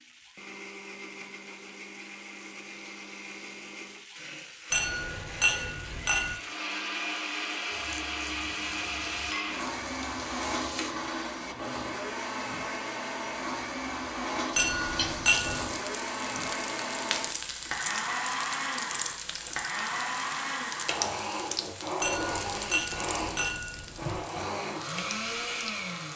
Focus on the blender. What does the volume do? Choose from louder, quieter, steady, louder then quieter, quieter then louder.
louder.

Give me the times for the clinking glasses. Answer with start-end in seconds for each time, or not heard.
4.7-6.3, 14.6-15.7, 22.0-24.2.